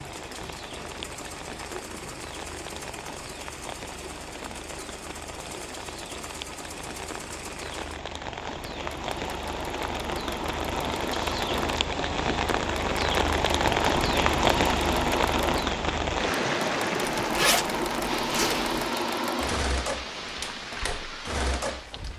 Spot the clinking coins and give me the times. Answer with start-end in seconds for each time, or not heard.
not heard.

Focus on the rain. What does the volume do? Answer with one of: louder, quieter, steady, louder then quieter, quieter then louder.
louder then quieter.